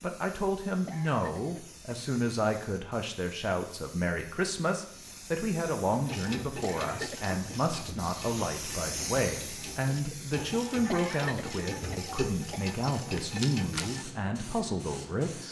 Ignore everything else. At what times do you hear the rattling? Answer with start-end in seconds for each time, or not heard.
12.9-13.8.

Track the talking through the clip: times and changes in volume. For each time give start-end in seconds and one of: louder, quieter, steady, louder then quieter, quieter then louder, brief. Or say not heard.
0.0-15.4 steady.